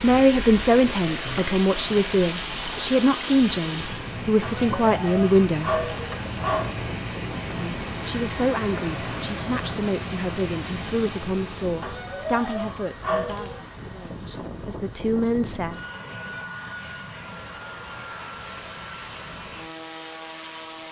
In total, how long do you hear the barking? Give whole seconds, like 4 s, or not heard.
4 s.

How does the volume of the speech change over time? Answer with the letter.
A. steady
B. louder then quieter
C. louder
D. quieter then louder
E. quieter
E.